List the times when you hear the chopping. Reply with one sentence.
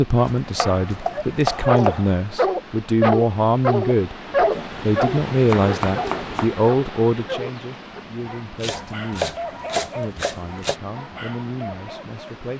You can hear the chopping from 0.1 to 2.1 s, from 4.5 to 6.5 s and from 8.6 to 10.8 s.